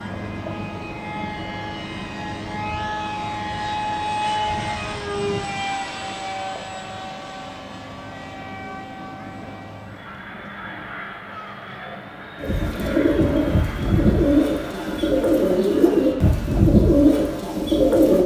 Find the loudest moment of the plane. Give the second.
4 s.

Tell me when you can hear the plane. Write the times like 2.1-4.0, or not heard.
0.0-16.8.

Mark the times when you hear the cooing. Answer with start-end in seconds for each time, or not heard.
12.3-18.2.